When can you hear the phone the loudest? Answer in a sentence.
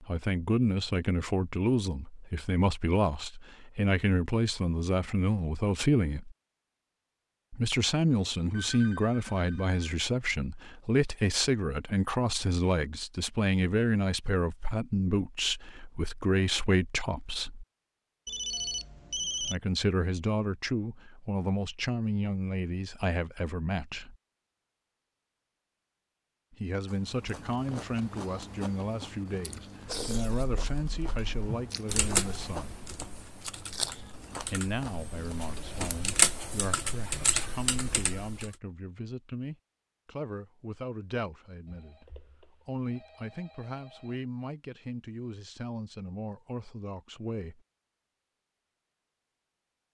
The loudest moment of the phone is at 19 seconds.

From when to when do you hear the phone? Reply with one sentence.
You can hear the phone from 8.5 to 9.8 s, from 18.2 to 19.6 s and from 41.6 to 44.2 s.